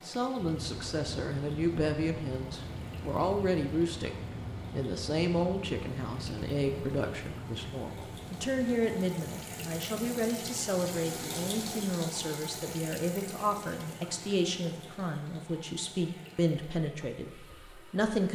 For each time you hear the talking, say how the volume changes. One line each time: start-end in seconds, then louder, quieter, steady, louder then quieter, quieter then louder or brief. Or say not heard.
0.0-18.2 steady.